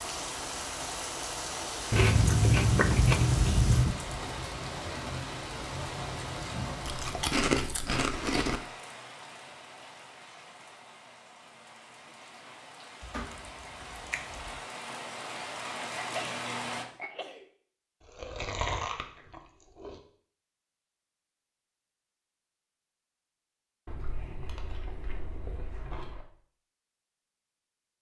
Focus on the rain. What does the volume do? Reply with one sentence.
The loudness of the rain goes down, then up.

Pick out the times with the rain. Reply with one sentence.
You can hear the rain from 0.0 to 16.9 s.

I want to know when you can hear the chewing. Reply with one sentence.
You can hear the chewing from 1.9 to 4.0 s, from 6.8 to 8.6 s, from 13.0 to 14.5 s, from 18.1 to 20.0 s and from 23.9 to 26.2 s.